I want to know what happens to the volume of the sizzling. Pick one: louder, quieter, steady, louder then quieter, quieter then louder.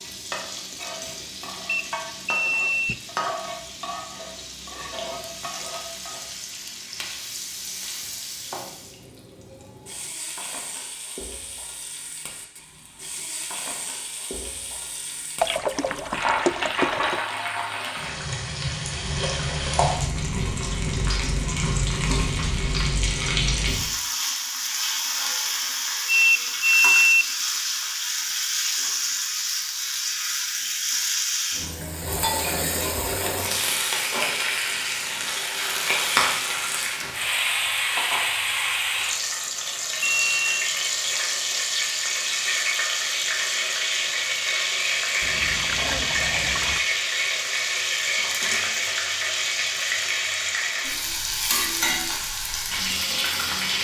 louder.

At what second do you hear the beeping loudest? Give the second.
27 s.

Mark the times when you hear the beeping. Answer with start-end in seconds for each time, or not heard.
1.6-3.0, 26.1-27.2, 40.0-40.8.